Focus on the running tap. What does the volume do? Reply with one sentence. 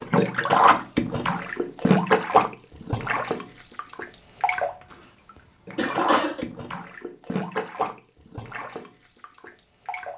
The volume of the running tap goes down.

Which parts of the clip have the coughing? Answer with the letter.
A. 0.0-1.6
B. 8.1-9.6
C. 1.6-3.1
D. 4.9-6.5
D.